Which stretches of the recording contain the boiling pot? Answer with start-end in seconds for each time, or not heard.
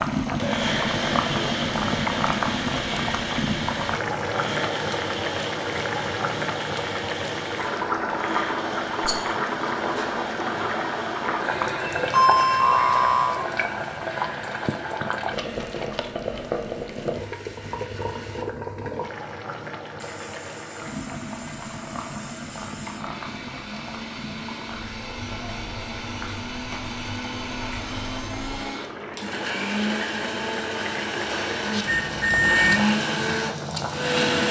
0.0-34.4.